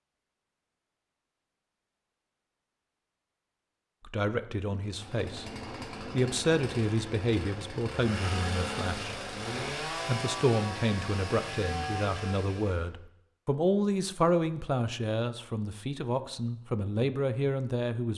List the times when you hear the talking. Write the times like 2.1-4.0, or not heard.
4.0-9.1, 9.9-18.1.